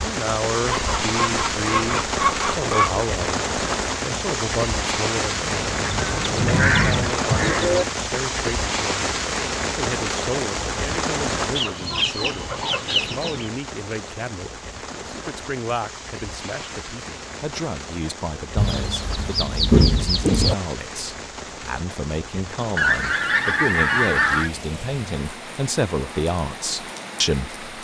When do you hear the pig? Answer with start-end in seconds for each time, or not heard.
not heard.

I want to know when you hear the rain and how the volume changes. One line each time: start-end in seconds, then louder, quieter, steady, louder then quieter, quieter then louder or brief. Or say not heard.
0.0-27.8 quieter.